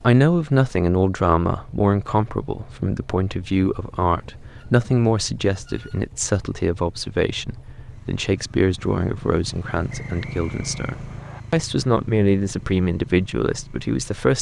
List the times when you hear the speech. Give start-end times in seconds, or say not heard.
0.0-14.3.